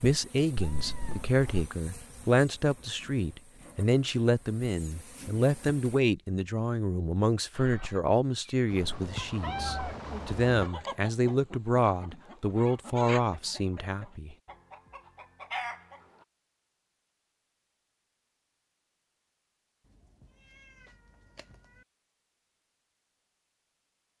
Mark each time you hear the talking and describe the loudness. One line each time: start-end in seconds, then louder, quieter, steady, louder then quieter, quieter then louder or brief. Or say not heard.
0.0-14.3 steady.